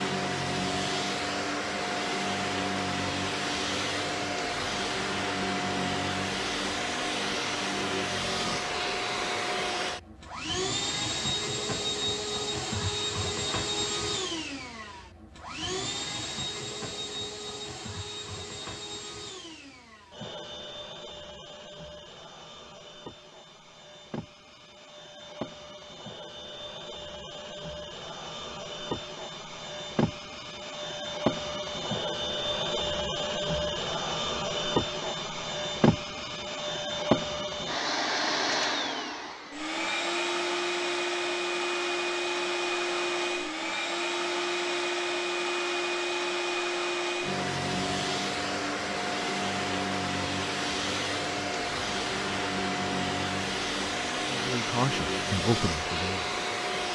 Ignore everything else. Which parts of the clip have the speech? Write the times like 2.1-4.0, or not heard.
54.2-56.4.